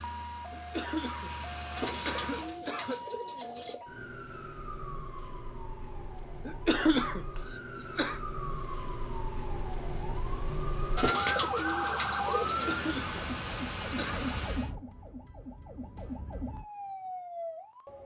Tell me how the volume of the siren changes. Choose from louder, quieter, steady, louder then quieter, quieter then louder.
louder then quieter.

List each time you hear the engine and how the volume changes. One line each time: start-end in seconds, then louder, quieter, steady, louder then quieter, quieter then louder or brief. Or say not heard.
0.0-2.6 brief
8.4-14.8 louder.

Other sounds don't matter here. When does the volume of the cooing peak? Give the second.
11 s.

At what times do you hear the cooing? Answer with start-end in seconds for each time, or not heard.
1.8-3.8, 10.9-12.8.